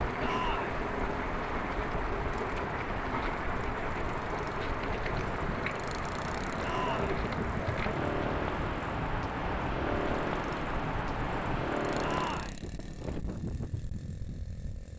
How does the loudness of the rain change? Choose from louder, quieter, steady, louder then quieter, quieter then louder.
steady.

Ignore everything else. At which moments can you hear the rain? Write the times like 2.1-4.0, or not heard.
0.0-12.6.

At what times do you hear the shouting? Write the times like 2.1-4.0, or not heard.
0.2-0.8, 6.6-7.1, 12.0-12.6.